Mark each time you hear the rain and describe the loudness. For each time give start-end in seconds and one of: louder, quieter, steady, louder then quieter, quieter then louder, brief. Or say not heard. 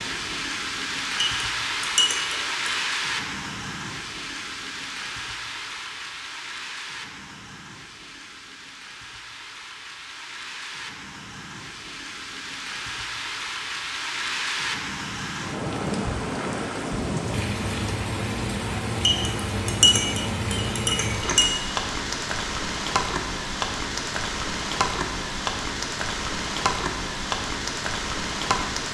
0.0-28.8 quieter then louder.